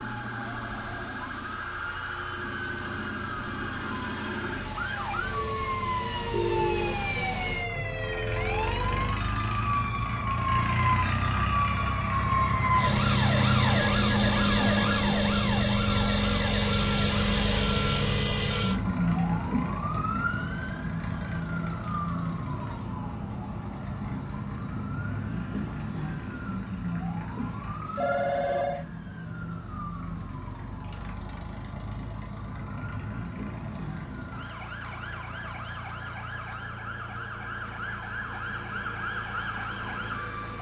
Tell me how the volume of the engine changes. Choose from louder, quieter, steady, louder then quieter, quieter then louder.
louder then quieter.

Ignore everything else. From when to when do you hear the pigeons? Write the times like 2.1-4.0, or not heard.
not heard.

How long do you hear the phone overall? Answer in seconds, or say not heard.
3 s.